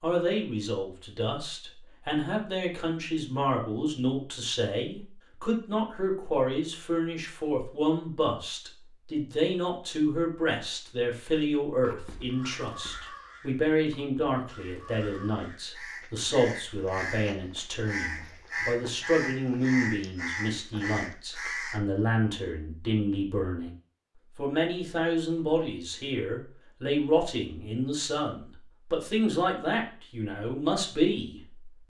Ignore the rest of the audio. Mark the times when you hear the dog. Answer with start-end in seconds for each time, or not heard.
not heard.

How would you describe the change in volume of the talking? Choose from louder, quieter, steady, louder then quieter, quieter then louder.
steady.